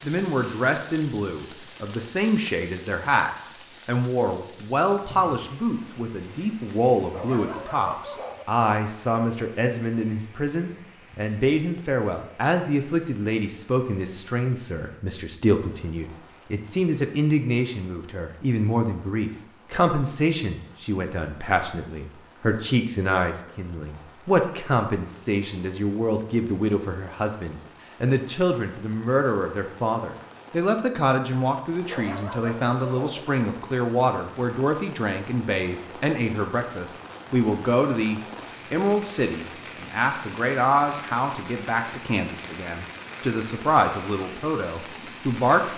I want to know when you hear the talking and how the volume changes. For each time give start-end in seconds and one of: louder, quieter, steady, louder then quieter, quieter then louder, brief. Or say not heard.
0.0-45.7 steady.